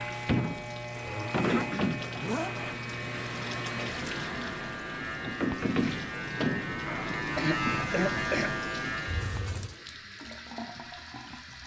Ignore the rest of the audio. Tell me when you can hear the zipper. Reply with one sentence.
You can hear the zipper from 0.9 to 2.5 s and from 9.1 to 9.8 s.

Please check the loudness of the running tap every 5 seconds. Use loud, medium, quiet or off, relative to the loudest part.
loud, loud, medium.